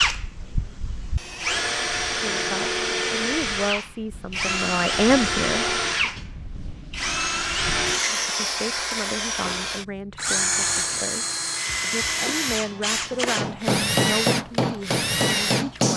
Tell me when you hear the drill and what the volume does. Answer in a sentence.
The drill can be heard from 0.0 to 15.9 s, at a steady volume.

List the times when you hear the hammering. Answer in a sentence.
The hammering can be heard from 13.3 to 15.9 s.